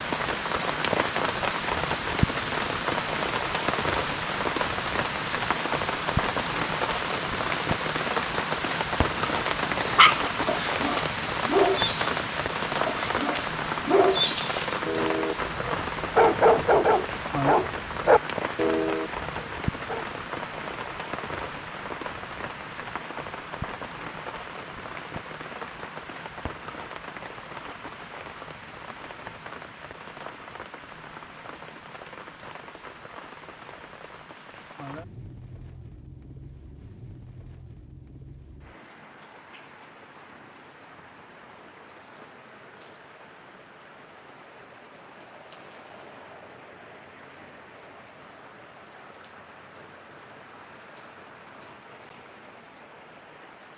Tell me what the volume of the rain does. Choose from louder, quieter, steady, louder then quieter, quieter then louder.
quieter.